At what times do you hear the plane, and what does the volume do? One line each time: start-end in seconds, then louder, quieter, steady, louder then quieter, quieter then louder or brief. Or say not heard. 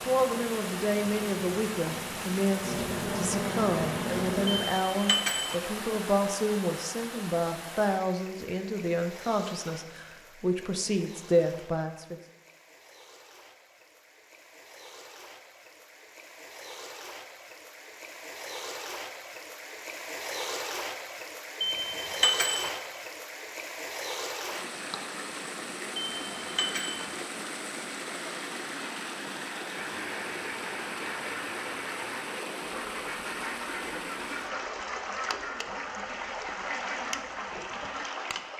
0.0-4.7 louder.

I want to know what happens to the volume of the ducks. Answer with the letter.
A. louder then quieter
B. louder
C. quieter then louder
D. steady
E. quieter
D.